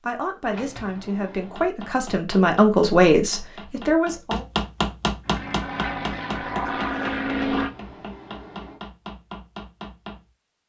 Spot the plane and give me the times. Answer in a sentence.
The plane can be heard from 5.2 to 7.7 s.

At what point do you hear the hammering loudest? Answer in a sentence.
The volume of the hammering peaks at 5 seconds.